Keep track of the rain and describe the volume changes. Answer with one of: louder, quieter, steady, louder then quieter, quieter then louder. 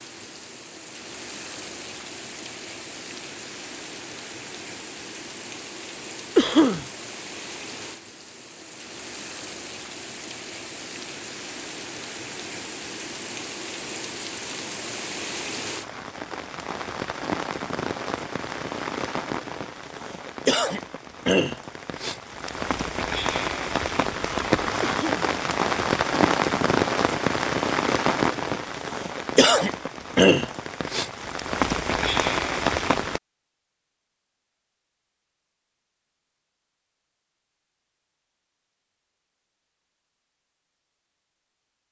louder.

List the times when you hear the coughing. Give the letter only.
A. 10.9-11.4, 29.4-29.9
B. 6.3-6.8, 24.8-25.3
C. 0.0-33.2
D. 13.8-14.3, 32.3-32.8
B.